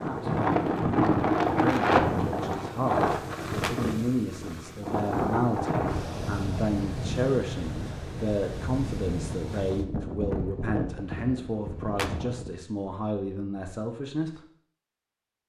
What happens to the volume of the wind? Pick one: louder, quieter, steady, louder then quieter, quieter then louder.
quieter.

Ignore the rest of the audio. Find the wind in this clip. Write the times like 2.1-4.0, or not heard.
0.0-12.7.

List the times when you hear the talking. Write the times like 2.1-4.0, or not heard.
0.0-14.4.